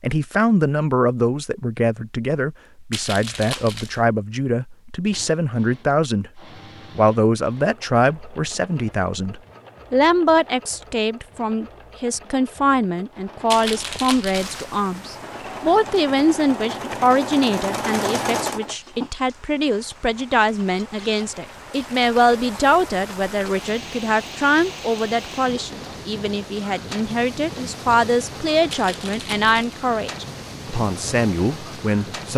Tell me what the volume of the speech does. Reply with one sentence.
The loudness of the speech stays about the same.